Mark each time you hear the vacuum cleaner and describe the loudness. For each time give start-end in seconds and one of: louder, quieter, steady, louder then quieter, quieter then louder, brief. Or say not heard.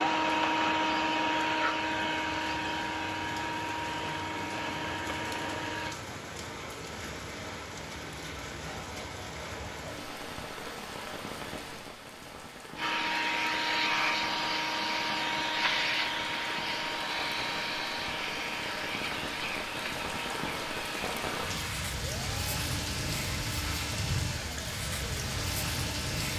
0.0-6.0 quieter
12.8-26.2 quieter.